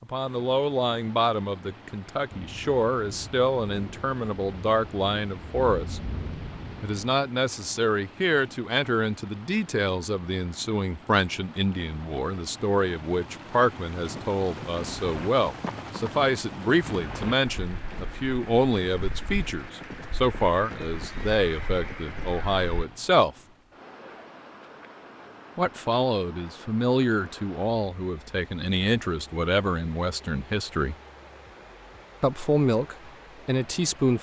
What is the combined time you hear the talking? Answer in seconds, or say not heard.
30 s.